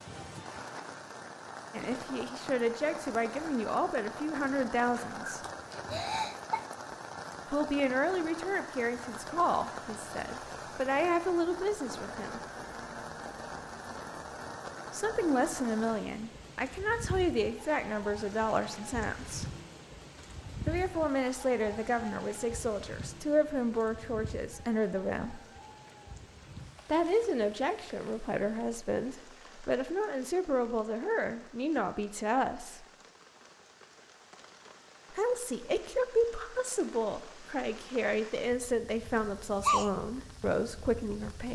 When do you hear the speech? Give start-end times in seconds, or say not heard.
1.7-5.4, 7.5-12.4, 14.9-19.4, 20.6-25.4, 26.9-32.9, 35.1-41.4.